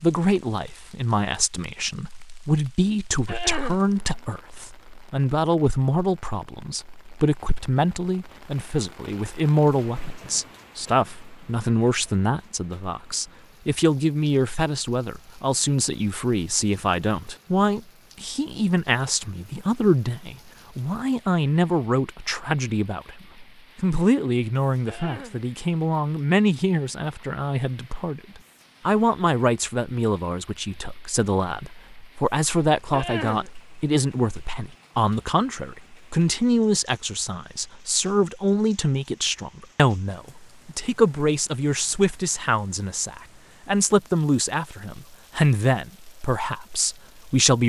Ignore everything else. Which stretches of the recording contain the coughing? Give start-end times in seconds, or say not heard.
3.2-3.9, 24.9-25.4, 32.9-33.5.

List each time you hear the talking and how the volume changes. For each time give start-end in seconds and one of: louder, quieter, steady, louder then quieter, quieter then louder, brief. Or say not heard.
0.0-47.6 steady.